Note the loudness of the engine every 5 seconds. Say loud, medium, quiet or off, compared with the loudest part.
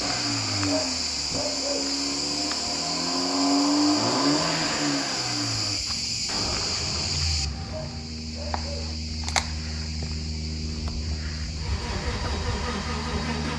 loud, medium, medium.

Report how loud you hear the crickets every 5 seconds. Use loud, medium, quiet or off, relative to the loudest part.
loud, loud, medium.